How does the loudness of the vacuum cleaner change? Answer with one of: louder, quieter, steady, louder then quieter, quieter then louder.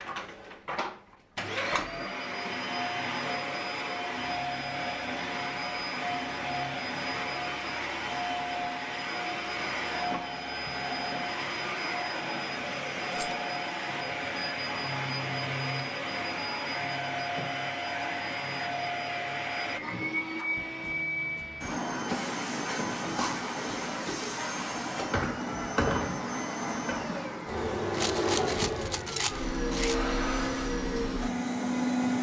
steady.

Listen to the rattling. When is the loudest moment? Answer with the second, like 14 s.
28 s.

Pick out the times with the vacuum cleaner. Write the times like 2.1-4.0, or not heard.
0.0-32.1.